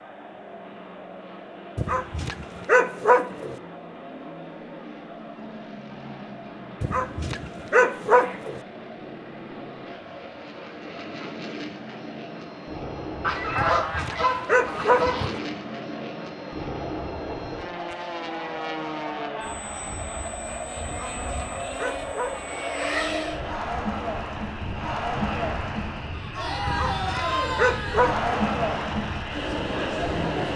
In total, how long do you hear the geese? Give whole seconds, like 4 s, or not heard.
2 s.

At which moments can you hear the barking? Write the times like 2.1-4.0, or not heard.
1.8-3.5, 6.8-8.6, 13.6-15.2, 20.9-22.4, 26.6-28.2.